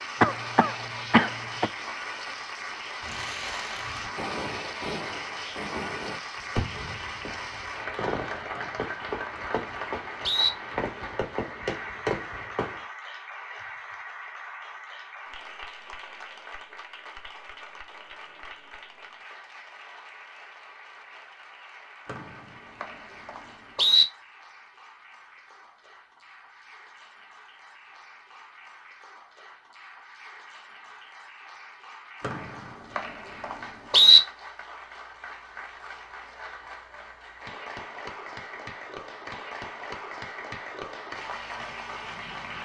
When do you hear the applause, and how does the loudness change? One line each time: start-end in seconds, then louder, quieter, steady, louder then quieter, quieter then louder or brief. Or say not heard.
0.0-42.6 quieter then louder.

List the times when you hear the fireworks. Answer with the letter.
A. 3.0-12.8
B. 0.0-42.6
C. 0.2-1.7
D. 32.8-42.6
A.